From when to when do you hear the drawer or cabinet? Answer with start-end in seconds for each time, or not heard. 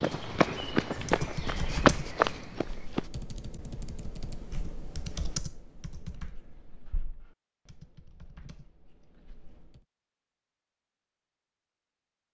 not heard.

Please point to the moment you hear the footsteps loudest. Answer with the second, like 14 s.
2 s.